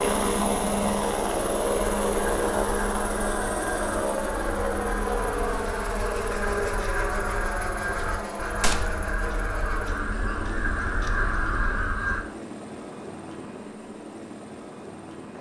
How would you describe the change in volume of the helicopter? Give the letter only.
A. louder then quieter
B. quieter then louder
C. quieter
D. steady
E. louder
C.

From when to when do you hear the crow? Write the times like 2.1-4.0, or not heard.
1.8-12.2.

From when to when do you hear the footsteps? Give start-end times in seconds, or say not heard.
not heard.